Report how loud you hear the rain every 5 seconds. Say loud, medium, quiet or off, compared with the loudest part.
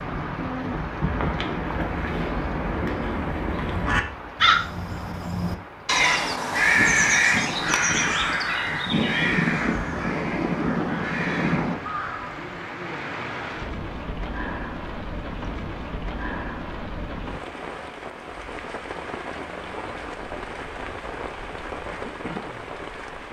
loud, medium, loud, loud, loud.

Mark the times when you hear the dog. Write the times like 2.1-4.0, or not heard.
not heard.